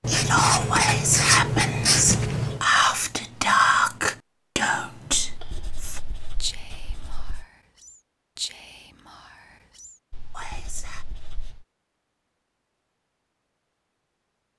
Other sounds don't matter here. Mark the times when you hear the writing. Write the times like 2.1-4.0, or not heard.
0.0-2.6, 5.2-7.5, 10.1-11.7.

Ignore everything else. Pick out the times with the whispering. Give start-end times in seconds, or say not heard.
0.1-11.1.